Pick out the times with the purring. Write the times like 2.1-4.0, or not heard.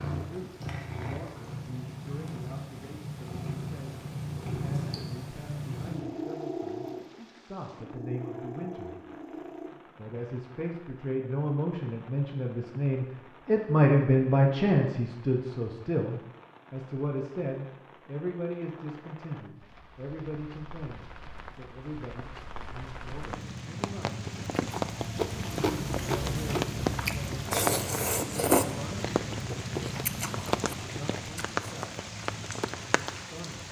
0.0-9.7.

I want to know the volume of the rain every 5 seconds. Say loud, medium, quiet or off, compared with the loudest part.
quiet, quiet, quiet, quiet, medium, loud, loud.